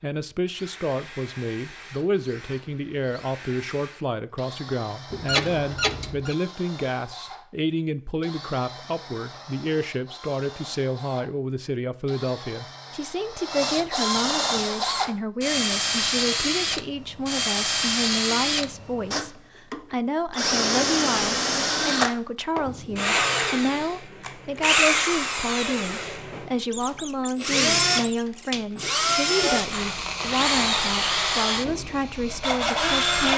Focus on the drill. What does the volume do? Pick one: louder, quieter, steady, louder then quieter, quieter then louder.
louder.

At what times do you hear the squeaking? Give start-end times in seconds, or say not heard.
5.1-6.3, 26.7-28.6.